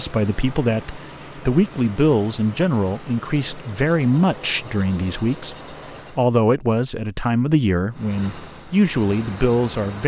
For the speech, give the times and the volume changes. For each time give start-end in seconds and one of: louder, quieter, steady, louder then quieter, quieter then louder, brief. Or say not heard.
0.0-10.0 steady.